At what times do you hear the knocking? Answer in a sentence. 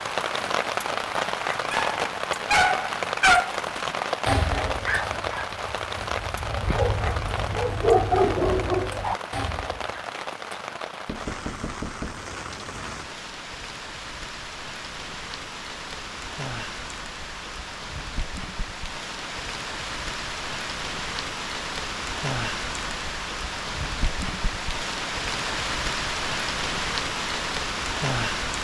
The knocking can be heard from 11.1 to 12.9 s.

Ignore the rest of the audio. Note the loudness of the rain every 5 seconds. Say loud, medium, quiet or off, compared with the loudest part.
loud, medium, medium, medium, loud, loud.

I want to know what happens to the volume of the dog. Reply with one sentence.
The volume of the dog goes down, then up.